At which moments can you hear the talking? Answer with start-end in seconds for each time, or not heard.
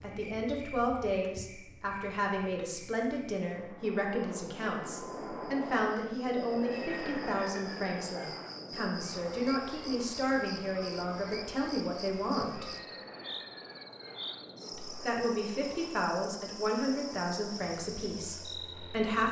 0.0-12.7, 14.8-19.2.